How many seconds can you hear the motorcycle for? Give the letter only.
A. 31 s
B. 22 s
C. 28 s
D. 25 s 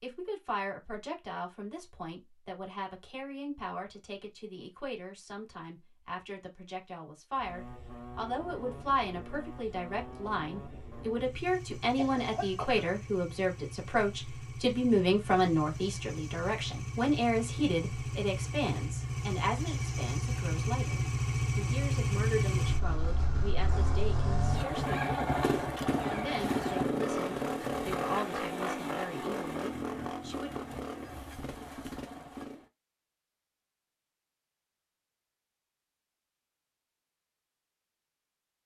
D.